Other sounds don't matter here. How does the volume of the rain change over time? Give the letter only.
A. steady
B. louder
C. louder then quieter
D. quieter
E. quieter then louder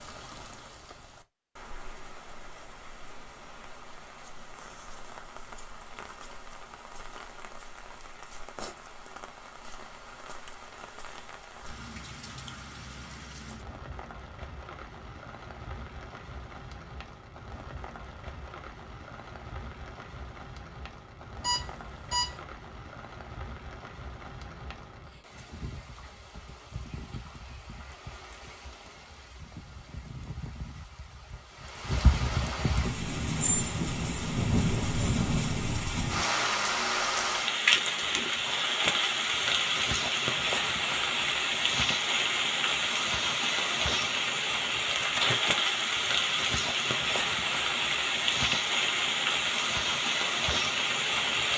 B.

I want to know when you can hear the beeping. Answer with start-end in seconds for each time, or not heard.
21.4-22.4.